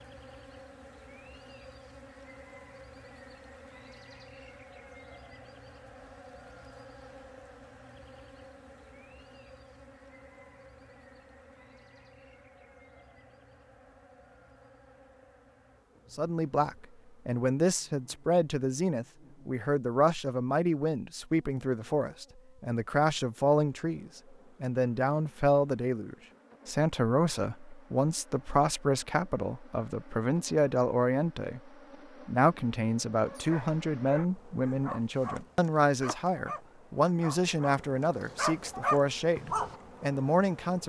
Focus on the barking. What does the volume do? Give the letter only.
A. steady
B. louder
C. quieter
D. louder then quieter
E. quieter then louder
B.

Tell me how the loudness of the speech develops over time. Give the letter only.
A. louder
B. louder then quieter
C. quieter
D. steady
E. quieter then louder
D.